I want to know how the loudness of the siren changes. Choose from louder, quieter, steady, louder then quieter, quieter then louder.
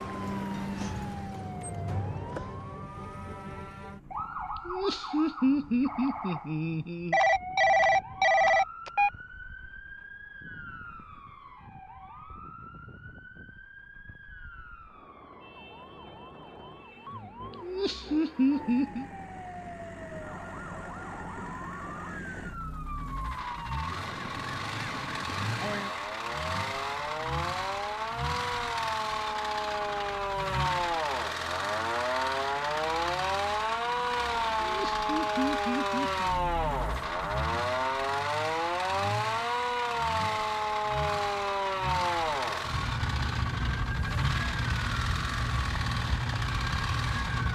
quieter then louder.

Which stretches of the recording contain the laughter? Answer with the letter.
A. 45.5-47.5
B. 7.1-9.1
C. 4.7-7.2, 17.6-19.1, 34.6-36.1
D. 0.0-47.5
C.